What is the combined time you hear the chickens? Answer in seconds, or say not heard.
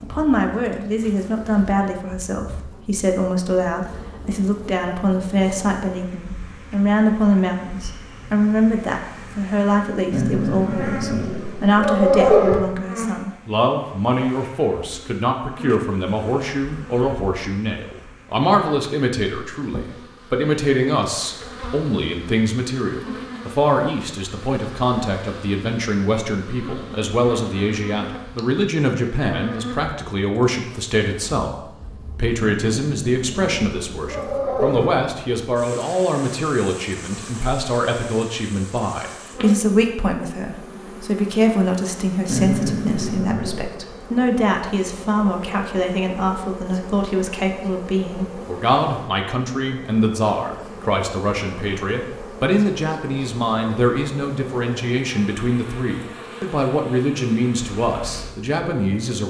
not heard.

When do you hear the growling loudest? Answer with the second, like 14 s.
12 s.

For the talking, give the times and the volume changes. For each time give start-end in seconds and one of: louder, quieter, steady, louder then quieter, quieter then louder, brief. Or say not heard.
0.0-59.2 steady.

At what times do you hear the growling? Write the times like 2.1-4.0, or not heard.
10.1-12.6, 32.4-35.0, 42.2-43.8.